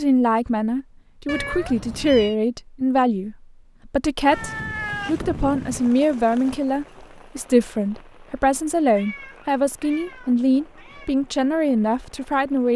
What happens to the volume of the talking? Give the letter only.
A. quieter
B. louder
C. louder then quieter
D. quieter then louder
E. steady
E.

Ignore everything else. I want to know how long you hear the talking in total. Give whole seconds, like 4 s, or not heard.
13 s.